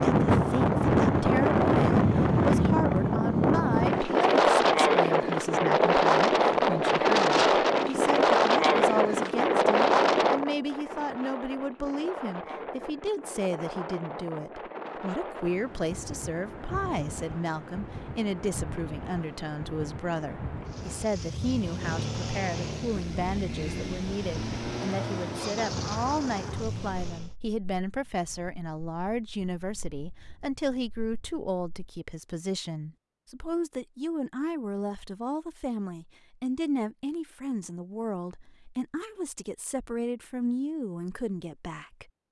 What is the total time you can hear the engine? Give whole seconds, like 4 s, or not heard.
7 s.